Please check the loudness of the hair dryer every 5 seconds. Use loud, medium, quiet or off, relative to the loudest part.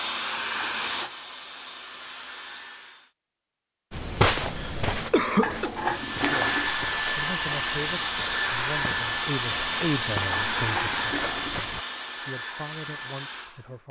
medium, loud, loud.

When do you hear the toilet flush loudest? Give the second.
6 s.